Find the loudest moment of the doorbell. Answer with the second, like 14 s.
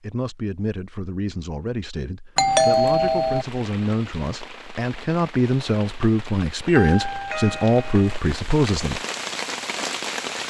3 s.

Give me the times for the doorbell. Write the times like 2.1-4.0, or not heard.
2.4-3.5, 6.7-8.2.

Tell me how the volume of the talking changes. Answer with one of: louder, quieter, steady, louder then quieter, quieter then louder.
louder.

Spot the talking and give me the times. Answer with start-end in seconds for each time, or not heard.
0.0-9.0.